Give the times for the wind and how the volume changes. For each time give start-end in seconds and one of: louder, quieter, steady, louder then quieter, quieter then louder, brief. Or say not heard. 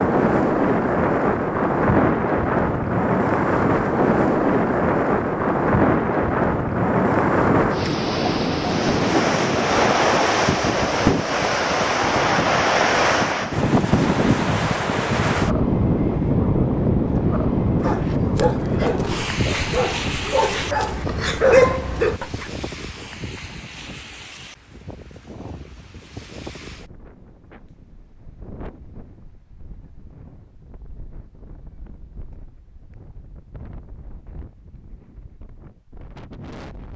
0.0-36.9 quieter.